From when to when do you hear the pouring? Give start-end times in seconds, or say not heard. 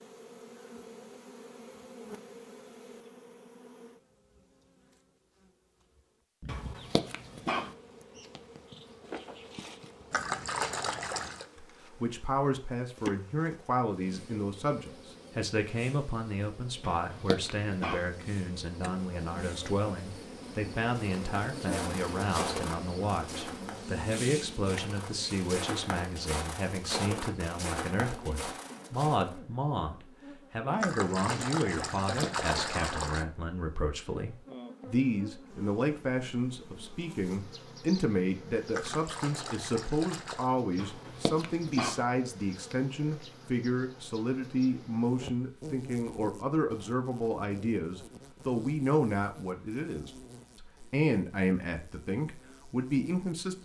10.1-11.4, 30.8-33.2, 38.7-40.5.